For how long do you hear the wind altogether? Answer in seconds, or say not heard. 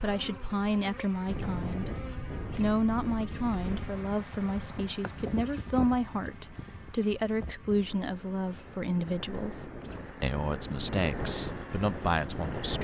13 s.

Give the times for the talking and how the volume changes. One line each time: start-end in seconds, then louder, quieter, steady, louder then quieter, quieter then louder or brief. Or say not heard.
0.0-12.7 steady.